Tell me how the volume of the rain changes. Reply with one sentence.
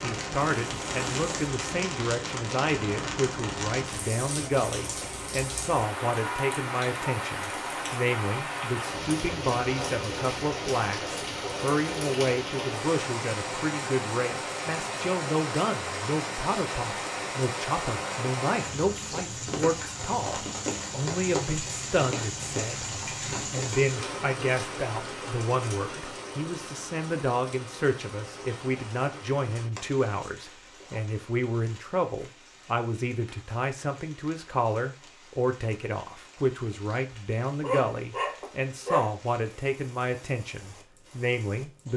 The loudness of the rain goes down.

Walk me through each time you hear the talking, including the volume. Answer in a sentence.
You can hear the talking from 0.0 to 41.9 s, at a steady volume.